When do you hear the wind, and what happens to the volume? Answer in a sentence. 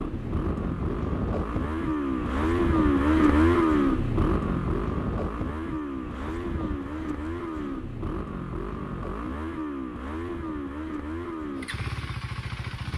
The wind can be heard from 0.0 to 12.9 s, getting quieter.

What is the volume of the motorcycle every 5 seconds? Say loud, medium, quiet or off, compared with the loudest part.
loud, medium, medium.